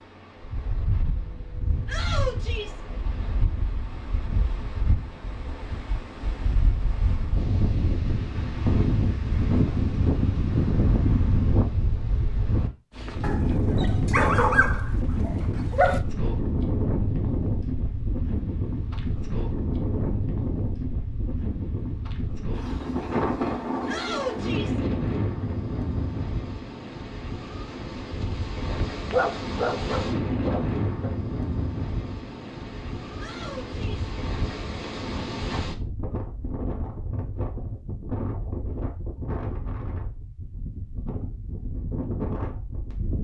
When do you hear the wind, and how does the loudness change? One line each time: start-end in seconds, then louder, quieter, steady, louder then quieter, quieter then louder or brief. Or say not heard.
0.0-43.1 louder then quieter.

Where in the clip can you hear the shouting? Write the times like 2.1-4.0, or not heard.
1.9-2.8, 23.9-24.8, 33.1-34.0.